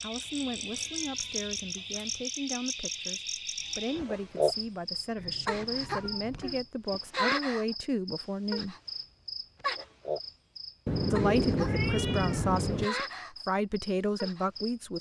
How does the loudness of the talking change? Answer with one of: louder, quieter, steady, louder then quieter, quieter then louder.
louder.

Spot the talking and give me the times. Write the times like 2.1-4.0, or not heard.
0.0-8.8, 11.1-14.9.